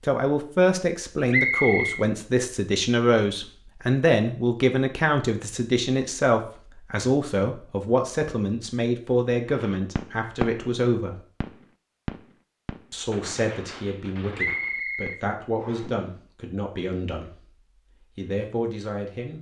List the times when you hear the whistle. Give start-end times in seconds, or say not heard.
1.3-2.0, 14.3-15.8.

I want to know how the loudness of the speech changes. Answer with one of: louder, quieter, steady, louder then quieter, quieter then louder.
quieter.